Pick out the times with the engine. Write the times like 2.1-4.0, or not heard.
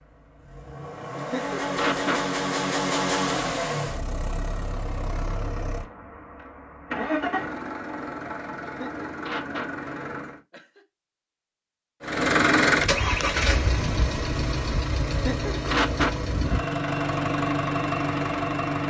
0.0-10.4, 12.0-18.8.